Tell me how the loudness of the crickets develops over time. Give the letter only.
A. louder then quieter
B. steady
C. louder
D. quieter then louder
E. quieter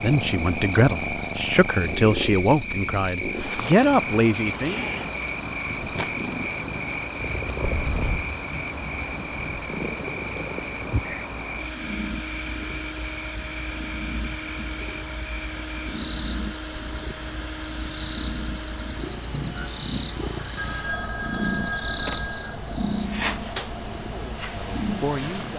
E.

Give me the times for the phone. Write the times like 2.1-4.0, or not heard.
7.6-8.3, 20.6-22.6.